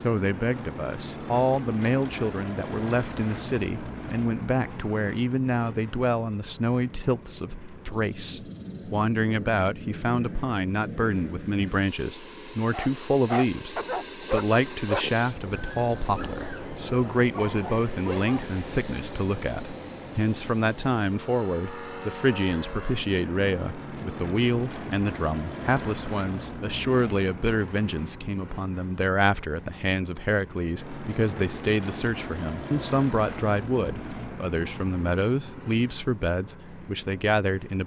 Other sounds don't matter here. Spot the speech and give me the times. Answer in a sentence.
The speech can be heard from 0.0 to 37.8 s.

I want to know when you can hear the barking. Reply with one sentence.
You can hear the barking from 12.7 to 18.4 s.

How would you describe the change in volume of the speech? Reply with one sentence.
The volume of the speech stays about the same.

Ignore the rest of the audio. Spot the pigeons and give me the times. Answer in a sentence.
The pigeons can't be heard in this clip.